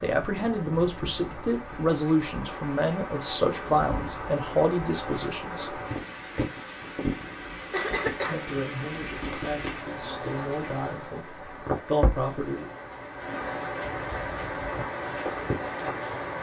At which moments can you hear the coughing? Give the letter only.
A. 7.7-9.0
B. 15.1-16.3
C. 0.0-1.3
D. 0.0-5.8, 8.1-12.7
A.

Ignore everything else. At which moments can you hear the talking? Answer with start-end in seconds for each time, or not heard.
0.0-5.8, 8.1-12.7.